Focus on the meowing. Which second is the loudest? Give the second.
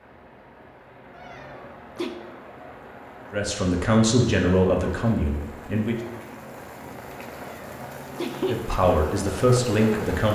8 s.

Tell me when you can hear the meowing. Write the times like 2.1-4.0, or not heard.
1.1-2.1, 7.3-8.6.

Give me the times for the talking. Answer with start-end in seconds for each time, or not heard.
3.3-6.0, 8.5-10.3.